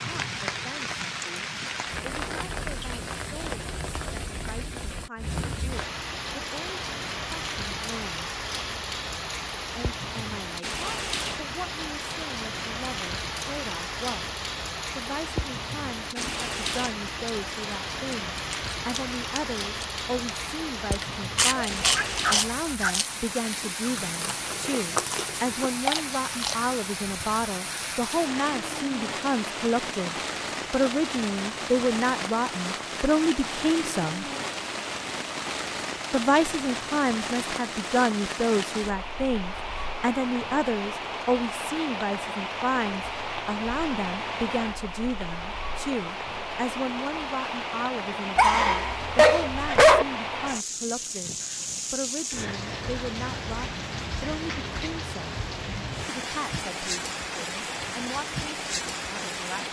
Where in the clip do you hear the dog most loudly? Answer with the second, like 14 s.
50 s.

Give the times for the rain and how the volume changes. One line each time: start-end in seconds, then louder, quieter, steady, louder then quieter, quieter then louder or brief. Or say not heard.
0.0-59.6 steady.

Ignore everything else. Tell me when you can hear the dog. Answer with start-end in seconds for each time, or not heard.
21.5-23.0, 48.4-50.0.